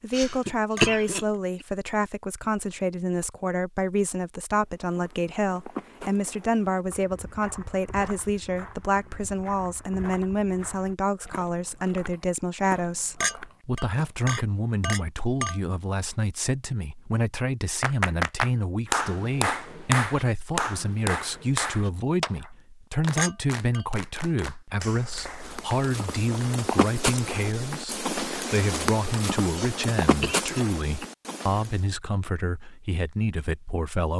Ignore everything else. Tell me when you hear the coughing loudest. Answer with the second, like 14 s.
1 s.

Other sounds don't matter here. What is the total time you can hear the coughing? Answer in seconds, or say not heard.
3 s.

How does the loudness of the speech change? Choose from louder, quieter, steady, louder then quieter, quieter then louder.
steady.